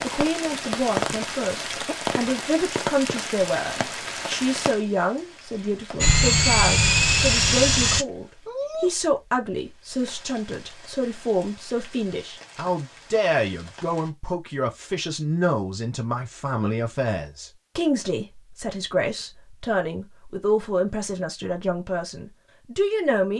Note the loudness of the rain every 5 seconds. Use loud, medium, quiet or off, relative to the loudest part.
loud, medium, quiet, off, off.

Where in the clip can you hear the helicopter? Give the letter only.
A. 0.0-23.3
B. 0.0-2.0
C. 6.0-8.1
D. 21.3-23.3
C.